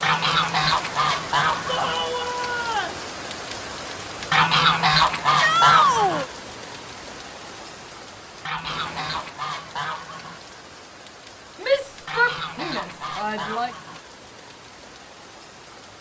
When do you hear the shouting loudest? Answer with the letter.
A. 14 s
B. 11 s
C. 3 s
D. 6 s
D.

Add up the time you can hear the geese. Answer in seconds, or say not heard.
8 s.